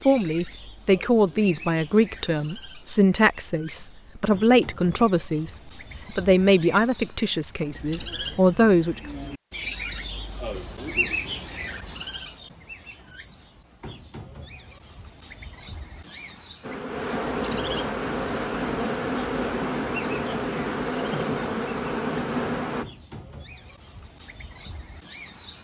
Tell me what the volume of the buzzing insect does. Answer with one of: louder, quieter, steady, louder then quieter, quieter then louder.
steady.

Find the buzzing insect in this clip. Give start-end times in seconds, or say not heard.
16.6-22.9.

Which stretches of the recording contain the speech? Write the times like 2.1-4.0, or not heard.
0.1-9.0.